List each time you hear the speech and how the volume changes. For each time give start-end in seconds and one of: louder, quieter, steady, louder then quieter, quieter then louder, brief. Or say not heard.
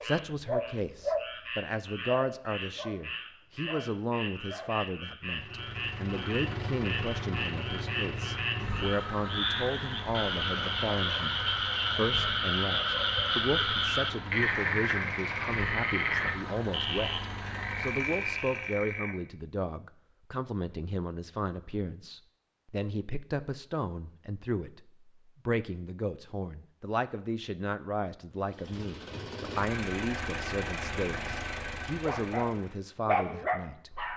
0.0-33.9 steady.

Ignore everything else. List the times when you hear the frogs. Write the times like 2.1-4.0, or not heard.
0.0-19.1.